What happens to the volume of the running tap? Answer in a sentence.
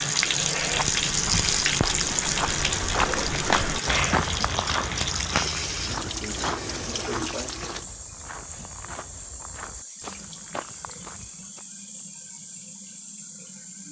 The loudness of the running tap goes down.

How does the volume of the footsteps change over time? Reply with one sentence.
The loudness of the footsteps goes down.